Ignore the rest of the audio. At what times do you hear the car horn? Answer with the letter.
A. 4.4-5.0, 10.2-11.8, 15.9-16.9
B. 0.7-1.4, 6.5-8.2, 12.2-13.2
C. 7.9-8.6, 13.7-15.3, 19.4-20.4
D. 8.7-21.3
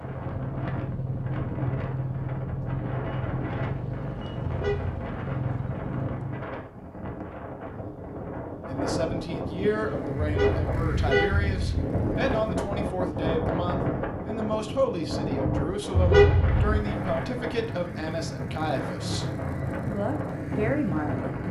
A.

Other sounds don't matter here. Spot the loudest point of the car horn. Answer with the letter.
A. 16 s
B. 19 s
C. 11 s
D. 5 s
A.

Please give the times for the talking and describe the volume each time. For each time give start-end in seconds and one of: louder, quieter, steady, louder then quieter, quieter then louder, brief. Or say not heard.
8.7-21.3 steady.